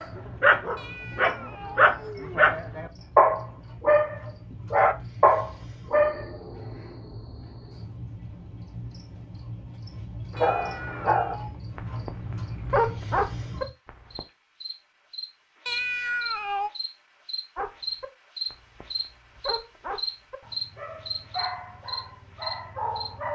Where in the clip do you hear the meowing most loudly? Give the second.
16 s.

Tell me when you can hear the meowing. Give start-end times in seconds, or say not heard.
0.8-2.4, 10.3-11.6, 15.7-16.7.